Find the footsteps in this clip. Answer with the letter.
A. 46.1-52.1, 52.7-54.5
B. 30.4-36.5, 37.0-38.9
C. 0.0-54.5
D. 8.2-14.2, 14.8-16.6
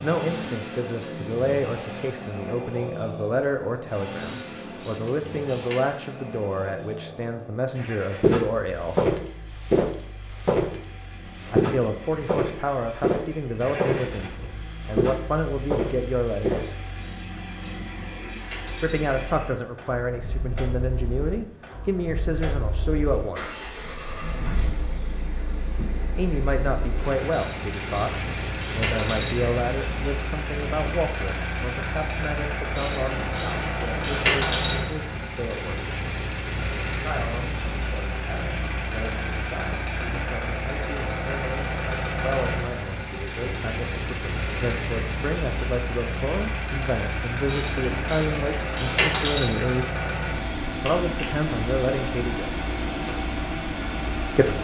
D.